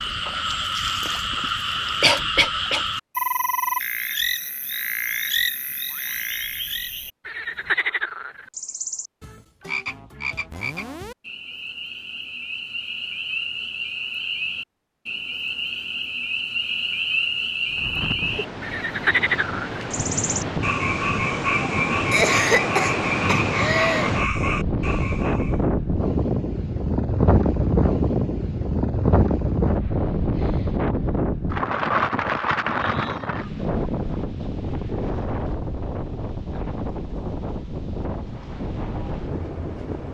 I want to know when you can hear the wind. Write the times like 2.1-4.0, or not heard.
17.6-40.0.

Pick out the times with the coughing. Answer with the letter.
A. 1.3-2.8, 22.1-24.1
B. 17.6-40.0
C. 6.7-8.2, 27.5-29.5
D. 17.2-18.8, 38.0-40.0
A.